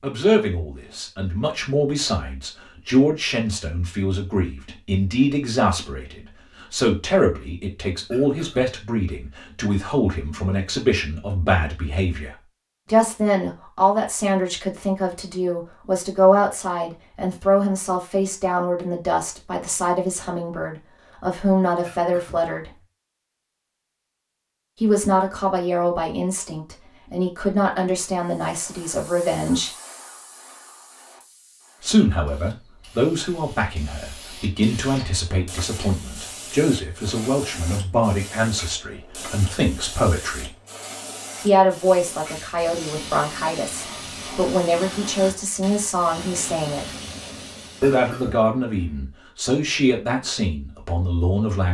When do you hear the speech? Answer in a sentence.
You can hear the speech from 0.0 to 22.7 s, from 24.8 to 29.7 s, from 31.8 to 40.5 s, from 41.4 to 46.9 s and from 47.8 to 51.6 s.